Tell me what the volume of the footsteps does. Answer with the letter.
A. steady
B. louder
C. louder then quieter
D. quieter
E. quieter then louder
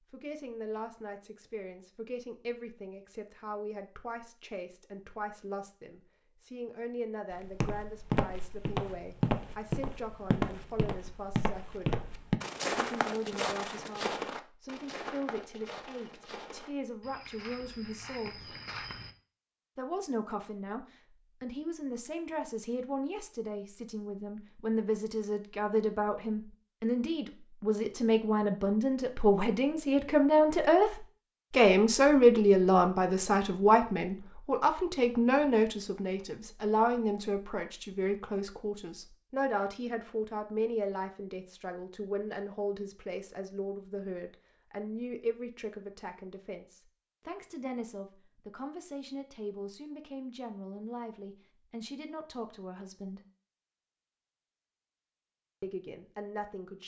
D.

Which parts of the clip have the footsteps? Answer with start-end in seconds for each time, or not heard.
7.3-19.1.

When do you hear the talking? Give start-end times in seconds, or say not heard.
0.1-12.1, 12.7-18.6, 19.8-53.2, 55.6-56.8.